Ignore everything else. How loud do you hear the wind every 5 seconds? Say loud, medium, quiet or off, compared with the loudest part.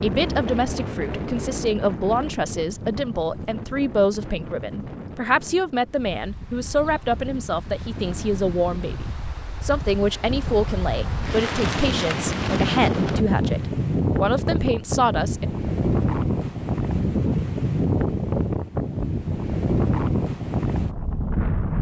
medium, quiet, loud, loud, loud.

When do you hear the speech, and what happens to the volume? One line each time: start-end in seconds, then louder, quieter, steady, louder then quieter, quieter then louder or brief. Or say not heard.
0.0-15.4 steady.